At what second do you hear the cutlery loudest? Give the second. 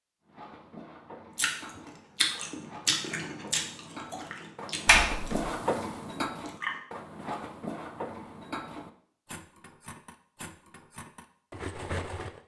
6 s.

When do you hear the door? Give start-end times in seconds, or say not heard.
4.8-5.5.